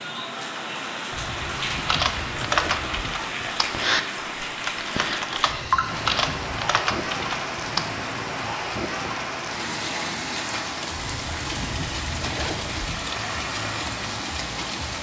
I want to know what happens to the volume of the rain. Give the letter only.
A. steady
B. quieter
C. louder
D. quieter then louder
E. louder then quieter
A.